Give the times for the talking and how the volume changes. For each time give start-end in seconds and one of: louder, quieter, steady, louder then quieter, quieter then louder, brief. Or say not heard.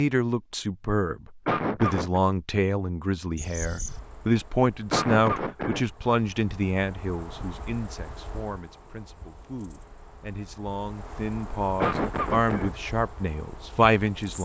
0.0-14.3 quieter then louder.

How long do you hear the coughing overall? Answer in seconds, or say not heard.
3 s.